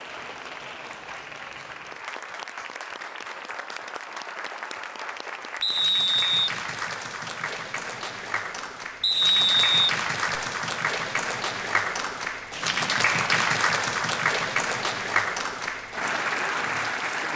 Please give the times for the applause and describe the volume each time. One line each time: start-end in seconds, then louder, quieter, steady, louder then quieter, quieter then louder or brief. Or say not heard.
0.0-17.3 louder.